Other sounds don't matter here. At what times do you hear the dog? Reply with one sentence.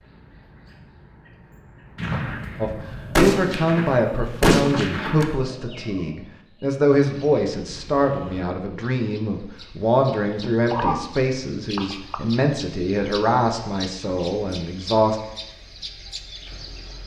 The dog can be heard from 10.6 to 12.4 s.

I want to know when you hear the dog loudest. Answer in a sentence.
The loudest moment of the dog is at 11 seconds.